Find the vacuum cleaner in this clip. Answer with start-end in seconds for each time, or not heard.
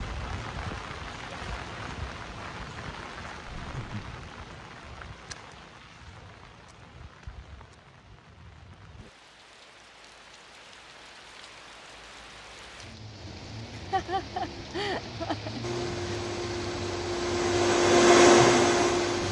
15.6-19.2.